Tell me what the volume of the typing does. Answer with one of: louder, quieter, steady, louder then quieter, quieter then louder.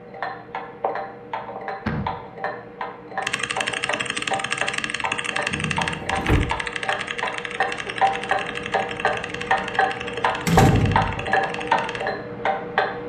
quieter.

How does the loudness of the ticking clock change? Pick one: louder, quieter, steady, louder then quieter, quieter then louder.
louder.